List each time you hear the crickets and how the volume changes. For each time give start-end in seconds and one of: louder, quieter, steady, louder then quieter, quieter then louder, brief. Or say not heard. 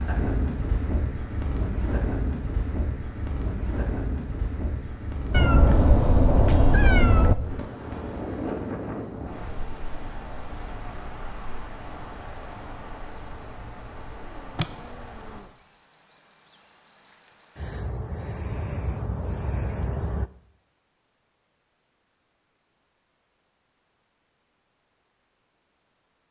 0.2-20.3 louder.